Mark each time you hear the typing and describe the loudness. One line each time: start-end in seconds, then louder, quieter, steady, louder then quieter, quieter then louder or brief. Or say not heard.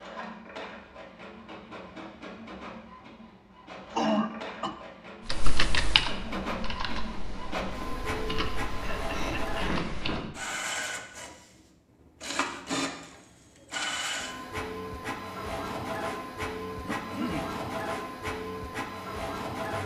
5.3-10.3 quieter then louder.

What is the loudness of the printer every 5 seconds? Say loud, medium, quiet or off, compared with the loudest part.
medium, loud, loud, loud.